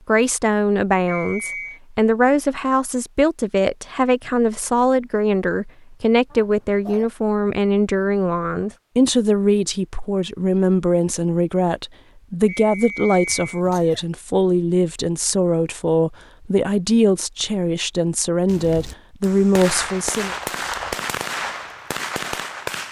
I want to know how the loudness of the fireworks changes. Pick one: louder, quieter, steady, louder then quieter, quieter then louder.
louder.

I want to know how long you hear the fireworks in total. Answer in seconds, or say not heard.
4 s.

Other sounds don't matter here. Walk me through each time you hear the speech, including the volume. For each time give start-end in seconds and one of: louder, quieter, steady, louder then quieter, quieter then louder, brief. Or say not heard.
0.1-20.4 steady.